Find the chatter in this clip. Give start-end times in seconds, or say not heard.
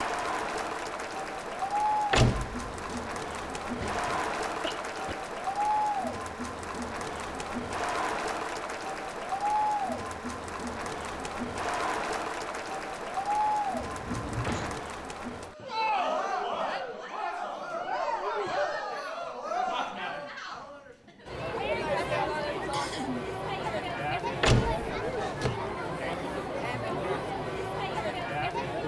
0.0-28.8.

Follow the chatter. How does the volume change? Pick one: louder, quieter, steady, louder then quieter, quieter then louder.
steady.